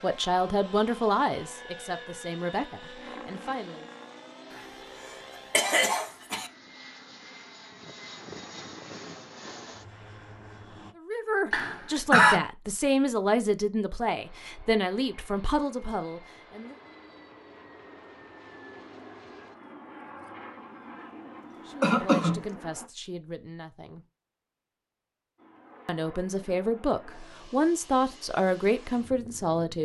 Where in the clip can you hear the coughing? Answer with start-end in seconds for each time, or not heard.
5.5-6.5, 11.5-12.4, 21.8-22.4.